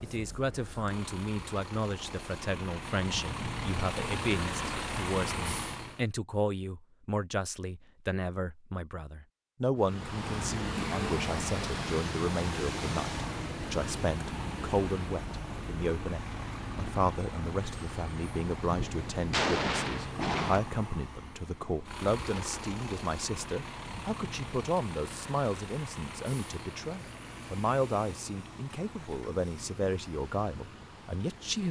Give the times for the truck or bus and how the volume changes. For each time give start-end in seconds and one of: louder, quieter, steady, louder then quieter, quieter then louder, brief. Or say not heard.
0.0-6.0 louder
9.8-31.6 quieter.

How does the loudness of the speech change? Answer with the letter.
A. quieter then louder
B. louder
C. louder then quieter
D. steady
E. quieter
D.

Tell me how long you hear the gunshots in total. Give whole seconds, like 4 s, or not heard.
2 s.